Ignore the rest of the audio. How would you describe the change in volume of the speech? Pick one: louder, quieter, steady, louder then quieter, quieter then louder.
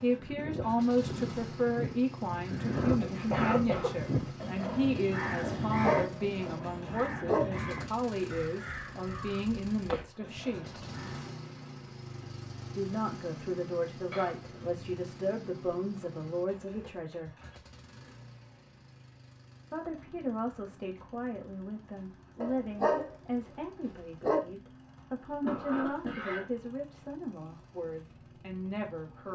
quieter.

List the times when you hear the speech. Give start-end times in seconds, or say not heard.
0.0-10.8, 12.8-17.3, 19.7-29.2.